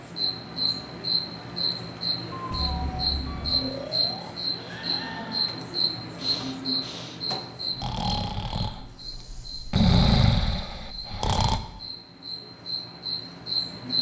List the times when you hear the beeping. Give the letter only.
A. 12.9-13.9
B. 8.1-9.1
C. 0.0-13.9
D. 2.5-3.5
D.